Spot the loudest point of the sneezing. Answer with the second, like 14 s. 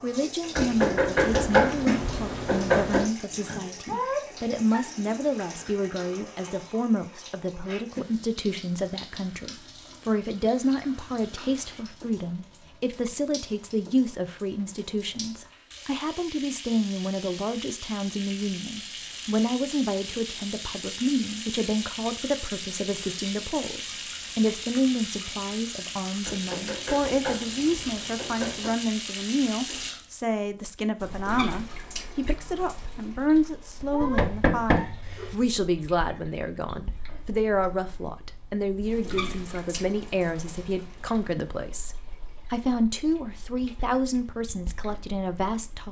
4 s.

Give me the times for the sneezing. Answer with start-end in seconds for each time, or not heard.
3.9-5.0, 33.9-35.0.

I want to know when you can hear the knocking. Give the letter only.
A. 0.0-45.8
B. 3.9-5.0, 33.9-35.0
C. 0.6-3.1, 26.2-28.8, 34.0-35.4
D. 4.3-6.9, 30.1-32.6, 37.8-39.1
C.